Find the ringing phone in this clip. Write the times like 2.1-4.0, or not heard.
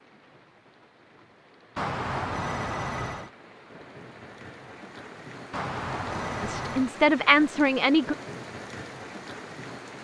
1.8-3.3, 5.5-7.0.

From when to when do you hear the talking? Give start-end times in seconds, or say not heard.
6.4-8.2.